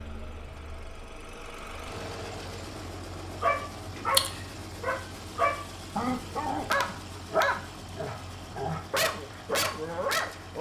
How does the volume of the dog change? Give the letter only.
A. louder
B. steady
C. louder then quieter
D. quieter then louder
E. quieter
D.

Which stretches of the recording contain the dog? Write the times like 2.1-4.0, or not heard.
3.4-10.5.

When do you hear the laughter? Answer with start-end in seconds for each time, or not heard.
not heard.